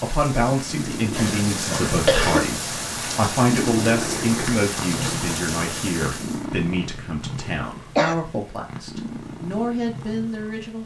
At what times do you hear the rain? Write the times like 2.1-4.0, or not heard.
0.0-6.5.